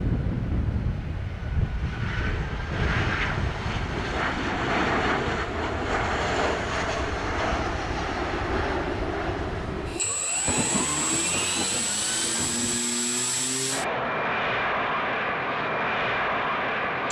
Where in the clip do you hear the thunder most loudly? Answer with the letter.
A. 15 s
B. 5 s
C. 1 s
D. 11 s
D.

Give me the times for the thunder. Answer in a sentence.
You can hear the thunder from 10.0 to 12.8 s.